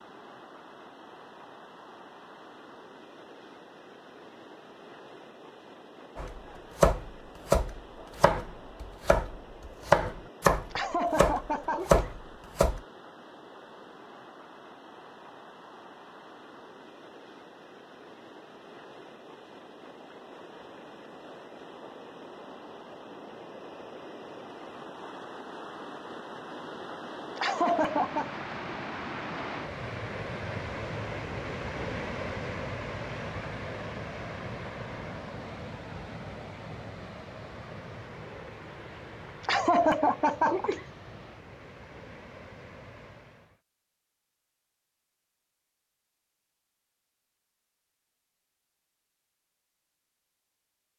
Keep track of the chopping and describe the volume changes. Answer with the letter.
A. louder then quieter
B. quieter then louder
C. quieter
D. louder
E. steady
B.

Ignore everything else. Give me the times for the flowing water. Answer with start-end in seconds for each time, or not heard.
0.0-43.6.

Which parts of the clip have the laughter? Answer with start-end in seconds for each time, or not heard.
10.7-12.1, 27.4-28.4, 39.5-40.9.